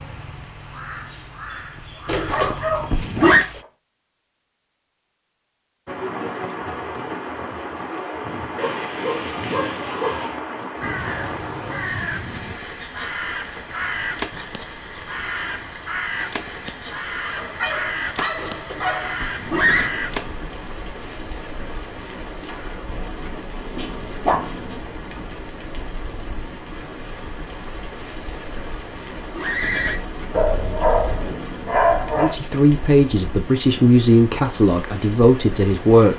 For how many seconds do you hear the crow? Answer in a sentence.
The crow can be heard for 13 seconds in total.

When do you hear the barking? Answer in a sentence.
You can hear the barking from 2.2 to 3.6 s, from 8.6 to 10.4 s, from 17.2 to 19.1 s, from 23.8 to 24.8 s and from 30.3 to 32.4 s.